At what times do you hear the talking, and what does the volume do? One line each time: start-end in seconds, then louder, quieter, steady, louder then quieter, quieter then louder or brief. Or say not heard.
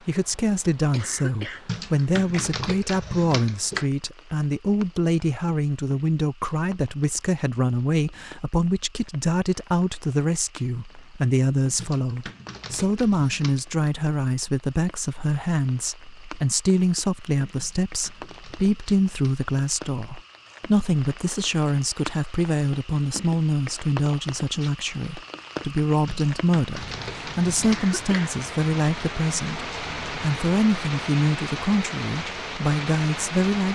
0.1-33.7 steady.